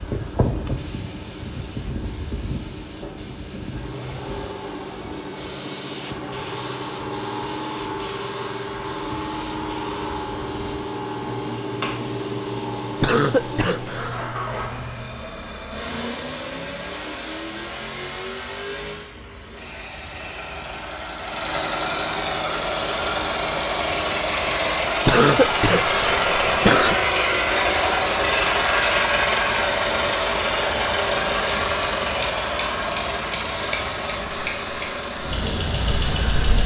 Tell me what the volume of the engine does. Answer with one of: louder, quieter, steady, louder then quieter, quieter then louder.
louder.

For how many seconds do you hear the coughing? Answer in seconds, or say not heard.
3 s.